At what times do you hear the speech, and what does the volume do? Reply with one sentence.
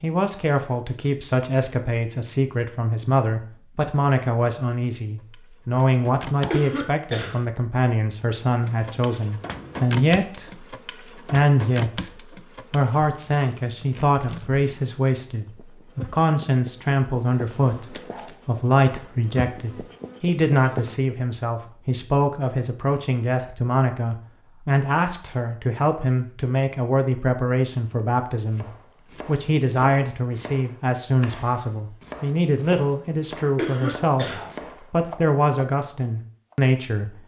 You can hear the speech from 0.0 to 37.2 s, at a steady volume.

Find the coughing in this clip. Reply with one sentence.
The coughing can be heard from 6.5 to 7.4 s and from 33.5 to 34.5 s.